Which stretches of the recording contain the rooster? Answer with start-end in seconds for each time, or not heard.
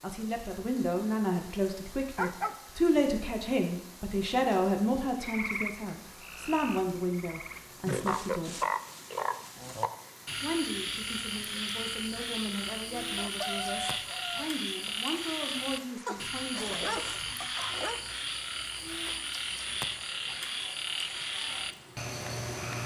13.2-15.0.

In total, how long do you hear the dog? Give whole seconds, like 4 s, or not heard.
3 s.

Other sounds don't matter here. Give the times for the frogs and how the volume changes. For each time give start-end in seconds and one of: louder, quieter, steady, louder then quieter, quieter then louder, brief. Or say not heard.
5.2-22.8 steady.